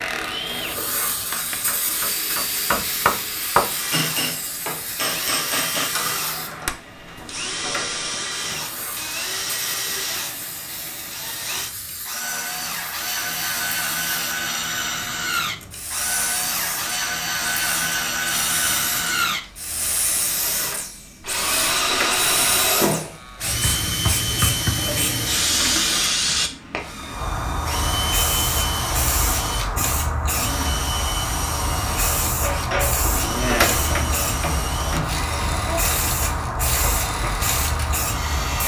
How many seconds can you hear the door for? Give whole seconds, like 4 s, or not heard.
4 s.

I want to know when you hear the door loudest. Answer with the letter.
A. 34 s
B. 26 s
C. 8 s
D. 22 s
A.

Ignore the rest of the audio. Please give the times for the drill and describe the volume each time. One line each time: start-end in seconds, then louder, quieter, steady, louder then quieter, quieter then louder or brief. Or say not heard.
0.0-38.6 louder then quieter.